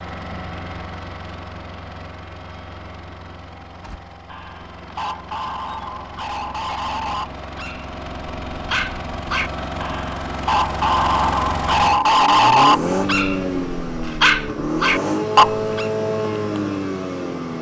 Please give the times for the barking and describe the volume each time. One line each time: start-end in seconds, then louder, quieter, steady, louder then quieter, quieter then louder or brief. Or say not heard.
3.8-15.9 louder.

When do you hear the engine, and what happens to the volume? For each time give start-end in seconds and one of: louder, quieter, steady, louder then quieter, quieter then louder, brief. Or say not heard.
0.0-17.5 louder.